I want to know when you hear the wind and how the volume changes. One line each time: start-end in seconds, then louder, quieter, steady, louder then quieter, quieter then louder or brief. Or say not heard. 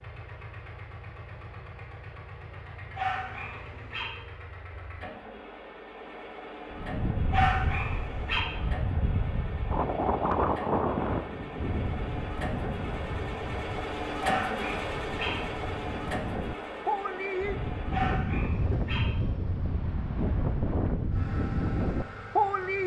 6.7-22.8 quieter then louder.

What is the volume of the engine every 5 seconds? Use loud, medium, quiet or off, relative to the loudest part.
medium, medium, loud, loud, medium.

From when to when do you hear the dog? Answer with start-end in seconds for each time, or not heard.
3.0-4.0, 7.3-8.4, 14.2-15.3, 17.9-19.0.